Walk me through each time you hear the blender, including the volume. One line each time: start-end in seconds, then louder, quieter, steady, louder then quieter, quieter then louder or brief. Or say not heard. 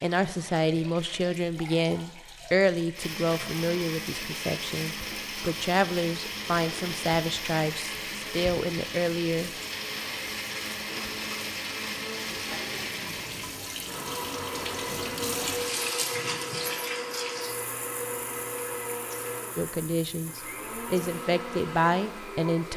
3.0-22.7 steady.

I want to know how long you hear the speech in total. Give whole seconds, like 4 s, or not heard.
13 s.